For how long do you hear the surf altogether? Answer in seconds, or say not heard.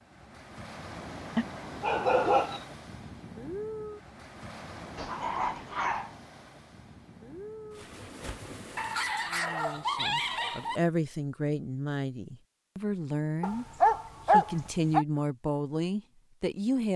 11 s.